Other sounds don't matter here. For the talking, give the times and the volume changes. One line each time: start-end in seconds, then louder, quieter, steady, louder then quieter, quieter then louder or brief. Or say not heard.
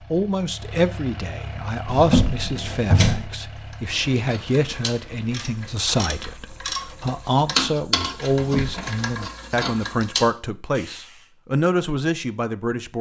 0.1-12.9 steady.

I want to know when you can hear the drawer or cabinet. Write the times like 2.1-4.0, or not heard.
1.9-3.3, 8.3-8.9.